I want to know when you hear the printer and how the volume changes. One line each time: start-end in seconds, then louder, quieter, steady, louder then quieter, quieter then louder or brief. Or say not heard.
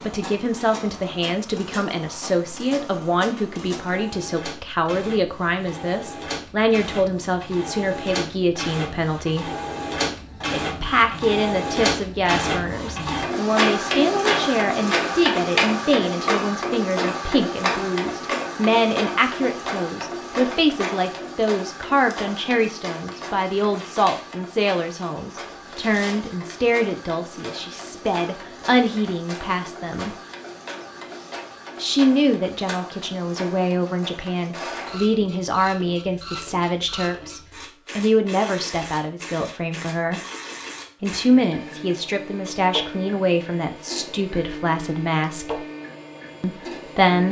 0.0-47.2 louder then quieter.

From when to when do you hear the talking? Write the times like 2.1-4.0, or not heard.
0.0-9.5, 10.5-30.1, 31.8-40.2, 41.0-45.6, 46.4-47.2.